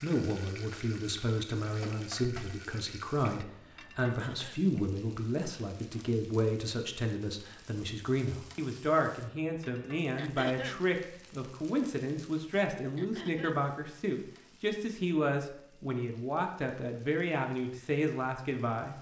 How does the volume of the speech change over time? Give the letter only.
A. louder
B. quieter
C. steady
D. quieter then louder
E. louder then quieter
C.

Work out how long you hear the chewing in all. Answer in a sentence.
You can't hear the chewing here.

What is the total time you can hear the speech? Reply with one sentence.
You can hear the speech for 19 seconds altogether.